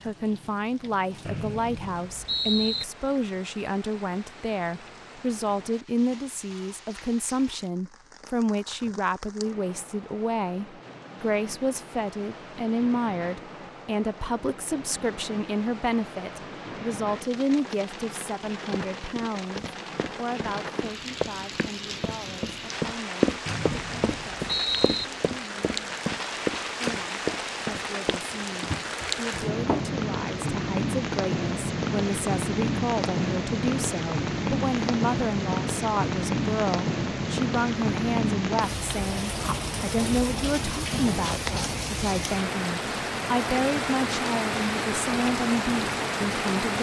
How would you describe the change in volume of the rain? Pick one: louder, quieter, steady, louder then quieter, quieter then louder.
louder.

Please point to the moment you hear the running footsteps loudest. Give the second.
23 s.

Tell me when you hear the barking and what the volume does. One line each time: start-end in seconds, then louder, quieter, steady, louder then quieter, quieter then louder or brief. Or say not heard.
not heard.